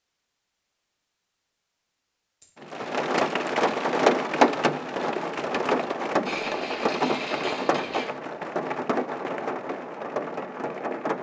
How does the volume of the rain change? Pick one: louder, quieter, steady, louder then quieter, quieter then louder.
quieter.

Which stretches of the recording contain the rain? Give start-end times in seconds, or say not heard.
2.6-11.1.